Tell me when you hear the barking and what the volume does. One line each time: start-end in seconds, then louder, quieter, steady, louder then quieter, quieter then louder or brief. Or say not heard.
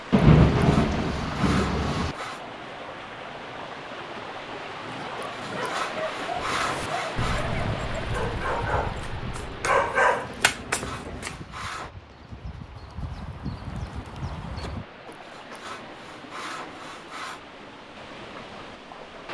4.7-11.3 louder.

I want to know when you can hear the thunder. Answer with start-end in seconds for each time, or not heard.
0.1-2.1.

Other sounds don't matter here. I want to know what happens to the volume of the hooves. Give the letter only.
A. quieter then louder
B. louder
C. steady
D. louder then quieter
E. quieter
A.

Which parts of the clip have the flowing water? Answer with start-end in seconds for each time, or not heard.
0.0-19.2.